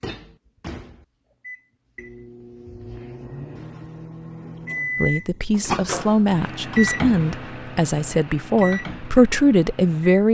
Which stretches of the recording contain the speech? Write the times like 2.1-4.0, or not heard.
5.0-10.2.